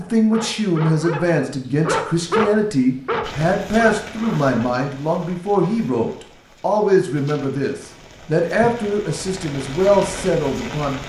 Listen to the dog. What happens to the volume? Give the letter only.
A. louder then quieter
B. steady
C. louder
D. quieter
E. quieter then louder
A.